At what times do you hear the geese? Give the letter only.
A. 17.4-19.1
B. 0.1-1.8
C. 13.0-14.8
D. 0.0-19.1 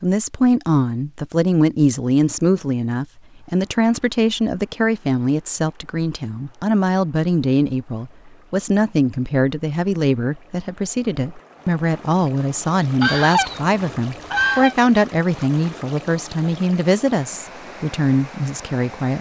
C.